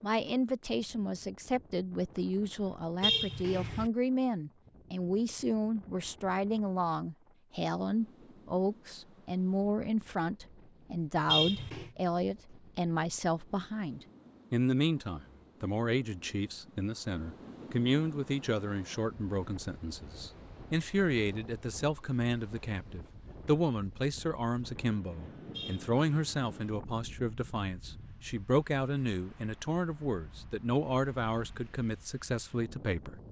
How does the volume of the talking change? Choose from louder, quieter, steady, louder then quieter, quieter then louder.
steady.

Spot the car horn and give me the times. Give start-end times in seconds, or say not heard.
3.0-3.9, 11.2-11.9, 25.5-26.4.